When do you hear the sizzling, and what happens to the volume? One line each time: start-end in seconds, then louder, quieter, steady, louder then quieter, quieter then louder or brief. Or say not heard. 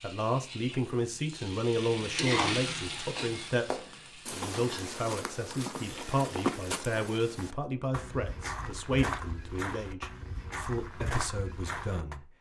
0.0-6.7 louder then quieter.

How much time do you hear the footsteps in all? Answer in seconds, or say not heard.
9 s.